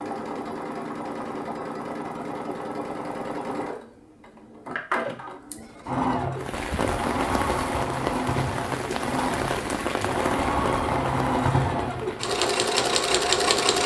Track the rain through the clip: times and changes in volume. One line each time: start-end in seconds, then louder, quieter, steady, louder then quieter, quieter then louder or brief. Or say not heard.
6.3-13.8 quieter.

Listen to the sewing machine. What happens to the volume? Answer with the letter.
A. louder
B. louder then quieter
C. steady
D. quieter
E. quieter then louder
A.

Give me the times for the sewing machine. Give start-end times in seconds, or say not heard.
0.0-13.8.